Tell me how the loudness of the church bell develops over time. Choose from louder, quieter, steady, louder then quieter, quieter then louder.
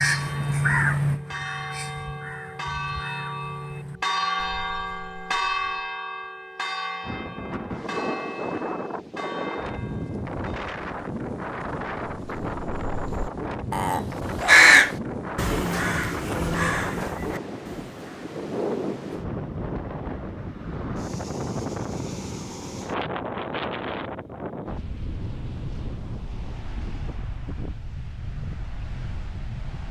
louder then quieter.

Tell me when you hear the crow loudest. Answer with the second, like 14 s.
15 s.